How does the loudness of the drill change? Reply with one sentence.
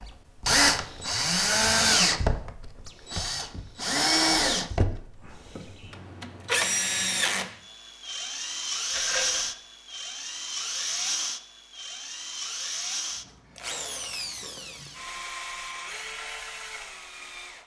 The volume of the drill goes down.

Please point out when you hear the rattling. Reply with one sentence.
You can hear the rattling from 8.9 to 9.5 s.